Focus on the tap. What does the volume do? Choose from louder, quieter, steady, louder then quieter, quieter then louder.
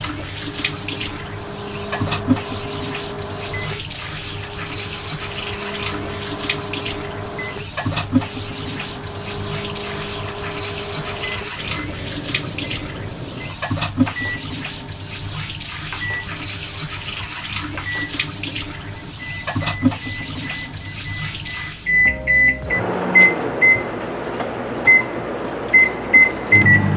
quieter.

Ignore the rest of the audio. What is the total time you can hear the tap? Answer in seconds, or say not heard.
27 s.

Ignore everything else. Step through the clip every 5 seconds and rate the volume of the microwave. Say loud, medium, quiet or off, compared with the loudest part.
quiet, quiet, quiet, quiet, loud, loud.